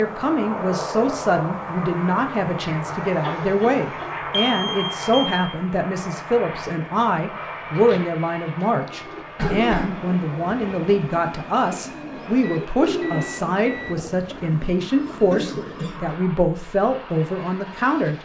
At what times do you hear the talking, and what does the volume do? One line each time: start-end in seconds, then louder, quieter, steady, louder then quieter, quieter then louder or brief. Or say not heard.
0.0-18.1 steady.